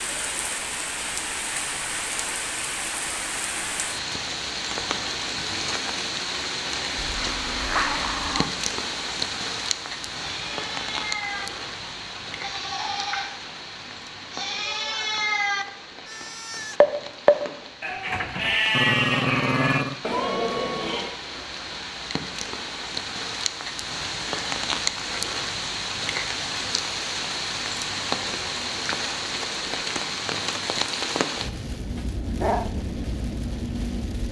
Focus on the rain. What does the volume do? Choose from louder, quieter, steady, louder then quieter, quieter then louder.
quieter then louder.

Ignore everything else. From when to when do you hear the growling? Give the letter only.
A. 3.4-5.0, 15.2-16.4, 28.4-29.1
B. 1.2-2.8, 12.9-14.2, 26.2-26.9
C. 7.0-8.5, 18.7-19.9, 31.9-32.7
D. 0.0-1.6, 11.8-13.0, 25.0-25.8
C.